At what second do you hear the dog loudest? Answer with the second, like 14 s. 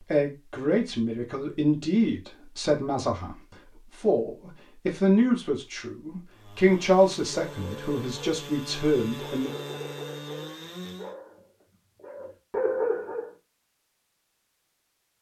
13 s.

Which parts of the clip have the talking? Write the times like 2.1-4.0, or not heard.
0.0-9.5.